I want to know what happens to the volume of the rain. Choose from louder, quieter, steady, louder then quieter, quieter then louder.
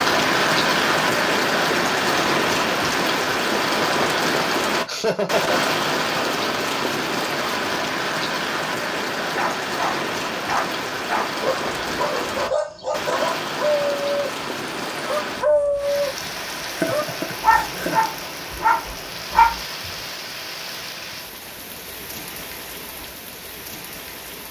quieter.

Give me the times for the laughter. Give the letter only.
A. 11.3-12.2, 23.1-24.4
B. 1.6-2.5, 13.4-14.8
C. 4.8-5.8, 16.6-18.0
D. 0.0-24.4
C.